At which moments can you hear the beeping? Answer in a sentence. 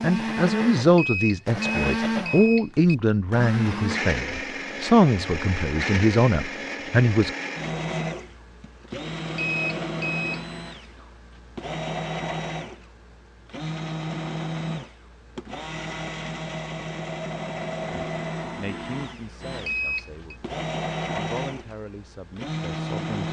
The beeping can be heard from 0.9 to 3.0 s, from 9.3 to 10.4 s and from 19.6 to 20.4 s.